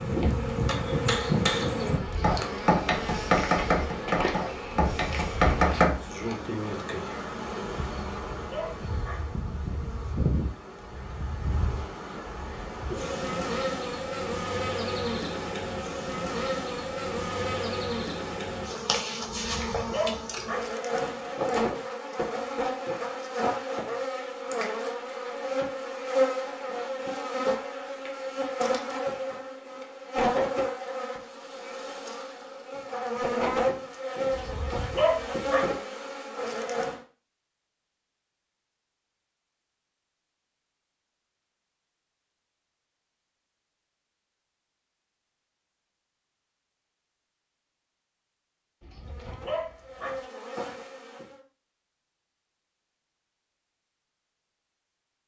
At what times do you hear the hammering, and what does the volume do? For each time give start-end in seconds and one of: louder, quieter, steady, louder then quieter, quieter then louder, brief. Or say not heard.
0.0-5.9 steady.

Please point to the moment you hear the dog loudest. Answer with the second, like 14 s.
35 s.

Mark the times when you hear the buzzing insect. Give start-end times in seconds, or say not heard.
0.0-37.0, 49.0-51.5.